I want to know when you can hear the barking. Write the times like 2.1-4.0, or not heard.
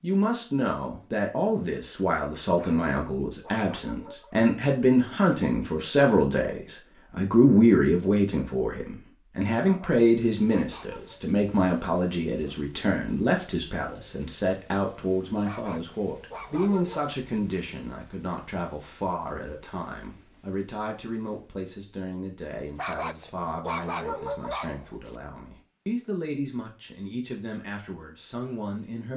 2.5-4.4, 9.6-11.2, 15.4-17.1, 22.8-25.1.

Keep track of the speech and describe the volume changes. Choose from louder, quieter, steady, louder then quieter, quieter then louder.
quieter.